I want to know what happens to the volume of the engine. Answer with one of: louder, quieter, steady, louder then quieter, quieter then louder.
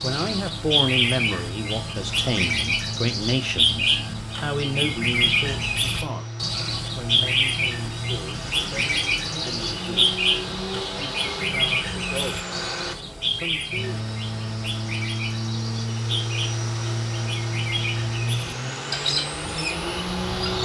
louder.